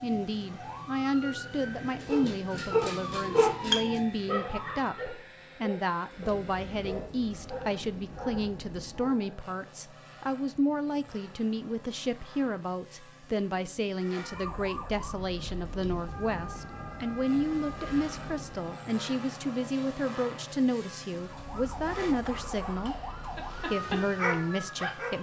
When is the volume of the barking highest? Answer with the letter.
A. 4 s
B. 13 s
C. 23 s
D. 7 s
A.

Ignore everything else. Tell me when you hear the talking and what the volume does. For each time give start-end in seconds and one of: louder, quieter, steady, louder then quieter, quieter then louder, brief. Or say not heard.
0.0-25.1 steady.